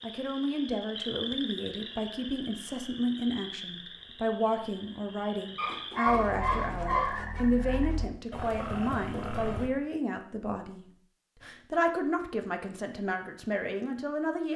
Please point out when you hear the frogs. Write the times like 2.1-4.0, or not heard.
0.0-9.7.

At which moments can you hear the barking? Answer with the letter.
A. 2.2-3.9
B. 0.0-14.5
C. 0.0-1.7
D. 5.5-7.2
D.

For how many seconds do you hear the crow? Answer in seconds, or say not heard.
not heard.